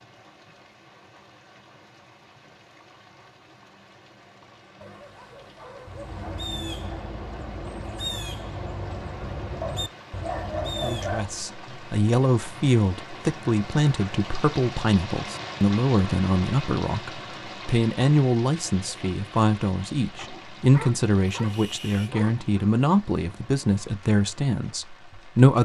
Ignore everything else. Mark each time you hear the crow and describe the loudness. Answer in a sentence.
The crow can be heard from 5.8 to 11.5 s, at a steady volume.